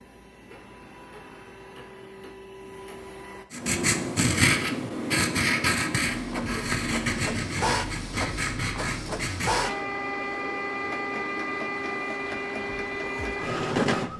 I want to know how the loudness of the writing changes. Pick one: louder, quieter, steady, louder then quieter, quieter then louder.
quieter.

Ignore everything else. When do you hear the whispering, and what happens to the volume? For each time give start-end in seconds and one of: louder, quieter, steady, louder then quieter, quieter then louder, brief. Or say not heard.
not heard.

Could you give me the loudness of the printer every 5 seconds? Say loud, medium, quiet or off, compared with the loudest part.
quiet, loud, loud.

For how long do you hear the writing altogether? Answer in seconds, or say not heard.
6 s.